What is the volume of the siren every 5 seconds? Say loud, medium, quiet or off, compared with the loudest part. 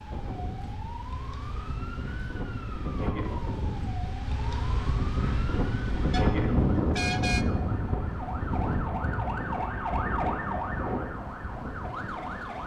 medium, loud, loud.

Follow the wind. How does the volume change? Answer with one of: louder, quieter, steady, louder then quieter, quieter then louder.
louder then quieter.